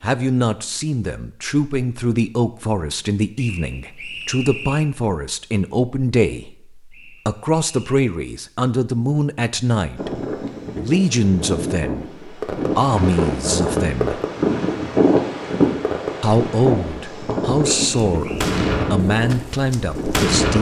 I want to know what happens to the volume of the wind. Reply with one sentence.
The volume of the wind goes up, then down.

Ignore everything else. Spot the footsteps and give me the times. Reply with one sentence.
The footsteps can't be heard in this clip.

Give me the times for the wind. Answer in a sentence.
You can hear the wind from 9.9 to 20.4 s.